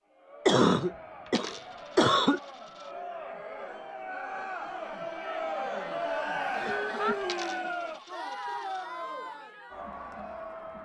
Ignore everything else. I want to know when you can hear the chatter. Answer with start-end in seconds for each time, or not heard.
0.1-10.8.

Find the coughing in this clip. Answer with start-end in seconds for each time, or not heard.
0.5-2.4, 6.7-7.2.